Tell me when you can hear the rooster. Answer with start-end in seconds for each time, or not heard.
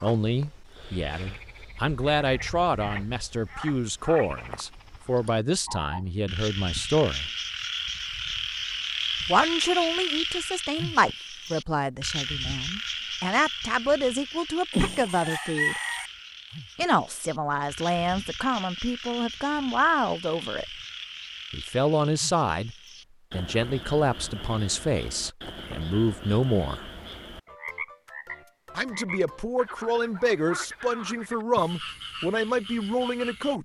14.7-16.1.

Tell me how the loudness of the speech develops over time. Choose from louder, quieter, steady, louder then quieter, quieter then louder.
steady.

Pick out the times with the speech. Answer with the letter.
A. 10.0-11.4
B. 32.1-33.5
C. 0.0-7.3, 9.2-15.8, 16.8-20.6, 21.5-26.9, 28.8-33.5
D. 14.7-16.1
C.